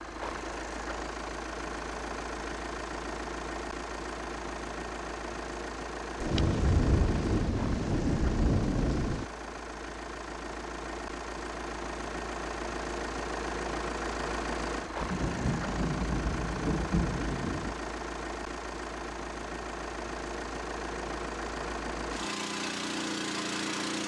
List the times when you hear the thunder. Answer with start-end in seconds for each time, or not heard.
6.2-9.2, 15.0-17.8.